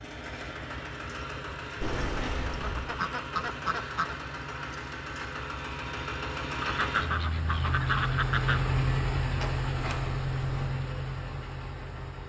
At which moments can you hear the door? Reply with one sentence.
You can hear the door from 1.8 to 2.9 s and from 9.3 to 10.8 s.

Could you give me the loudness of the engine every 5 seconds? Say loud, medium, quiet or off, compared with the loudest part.
medium, loud, loud.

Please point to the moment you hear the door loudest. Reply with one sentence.
The volume of the door peaks at 2 seconds.